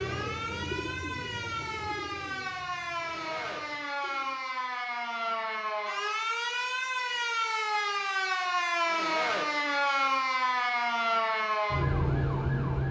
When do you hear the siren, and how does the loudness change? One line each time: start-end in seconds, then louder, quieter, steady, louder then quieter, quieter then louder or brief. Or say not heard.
0.0-12.8 louder.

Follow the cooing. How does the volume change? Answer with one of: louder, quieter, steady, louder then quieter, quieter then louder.
quieter.